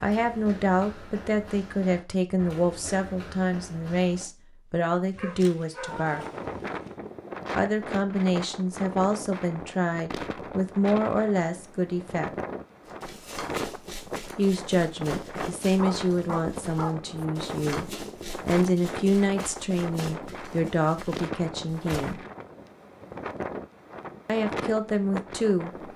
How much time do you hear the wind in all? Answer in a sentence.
You can hear the wind for 20 seconds altogether.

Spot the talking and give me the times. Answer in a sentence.
You can hear the talking from 0.0 to 6.2 s, from 7.5 to 12.3 s, from 14.3 to 22.2 s and from 24.2 to 25.7 s.